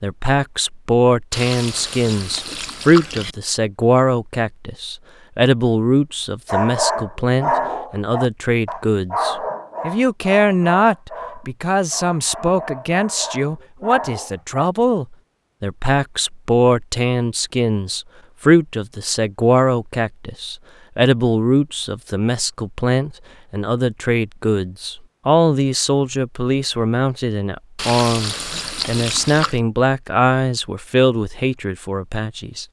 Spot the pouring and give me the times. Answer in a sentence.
The pouring can be heard from 1.3 to 3.4 s and from 27.8 to 29.6 s.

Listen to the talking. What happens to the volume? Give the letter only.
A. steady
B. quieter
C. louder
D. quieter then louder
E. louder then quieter
A.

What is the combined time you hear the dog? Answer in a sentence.
You can hear the dog for 8 seconds altogether.